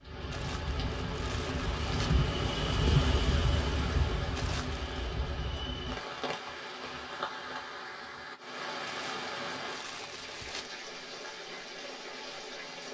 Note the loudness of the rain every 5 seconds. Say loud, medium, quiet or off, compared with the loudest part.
loud, medium, medium.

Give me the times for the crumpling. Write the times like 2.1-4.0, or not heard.
0.3-2.1, 4.3-5.0, 8.8-10.7.